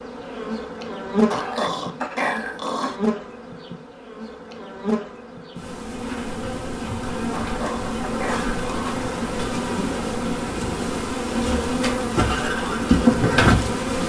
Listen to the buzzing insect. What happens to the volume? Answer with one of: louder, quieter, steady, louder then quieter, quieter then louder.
louder.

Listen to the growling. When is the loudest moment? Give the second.
2 s.